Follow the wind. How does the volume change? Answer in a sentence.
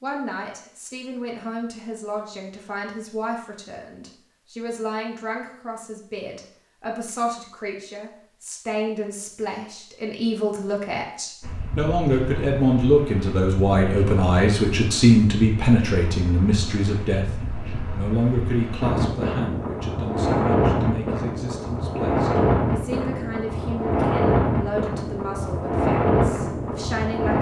The volume of the wind goes up.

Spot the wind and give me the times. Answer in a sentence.
You can hear the wind from 11.4 to 27.3 s.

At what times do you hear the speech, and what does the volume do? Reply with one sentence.
The speech can be heard from 0.0 to 27.3 s, getting louder then quieter.